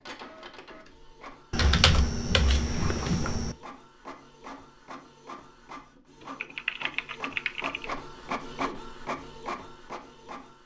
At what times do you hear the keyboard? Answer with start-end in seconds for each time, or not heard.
1.5-3.5, 6.2-7.9.